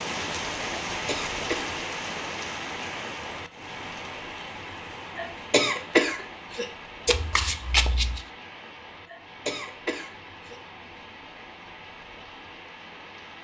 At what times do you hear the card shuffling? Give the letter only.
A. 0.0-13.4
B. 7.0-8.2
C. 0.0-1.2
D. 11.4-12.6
B.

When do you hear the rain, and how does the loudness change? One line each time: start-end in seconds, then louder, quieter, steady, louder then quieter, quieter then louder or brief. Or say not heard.
0.0-13.4 quieter.